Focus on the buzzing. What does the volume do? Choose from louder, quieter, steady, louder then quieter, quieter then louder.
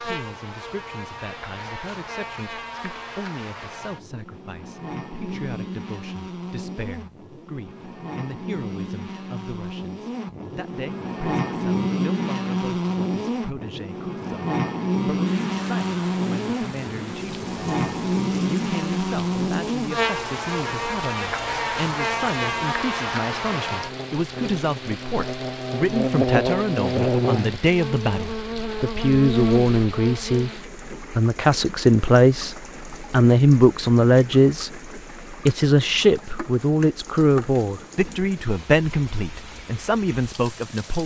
louder.